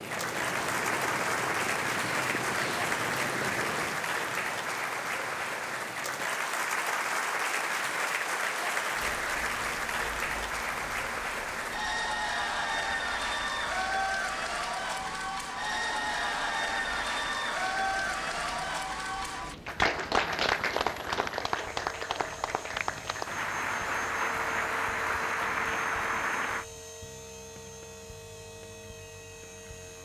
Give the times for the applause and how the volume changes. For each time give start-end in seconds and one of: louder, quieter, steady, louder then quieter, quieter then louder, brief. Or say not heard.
0.0-26.6 steady.